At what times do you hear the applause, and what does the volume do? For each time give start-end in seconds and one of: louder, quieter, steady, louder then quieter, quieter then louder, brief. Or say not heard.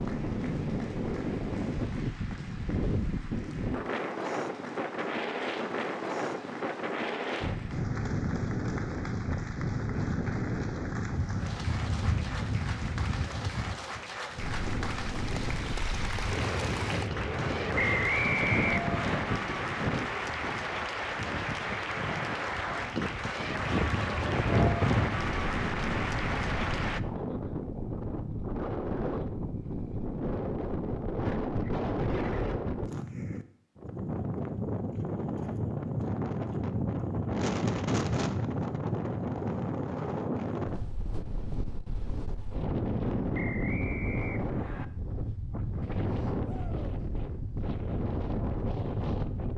0.0-27.0 louder.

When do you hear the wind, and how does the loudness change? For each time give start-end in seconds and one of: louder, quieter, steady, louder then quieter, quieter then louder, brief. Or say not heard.
0.0-49.5 steady.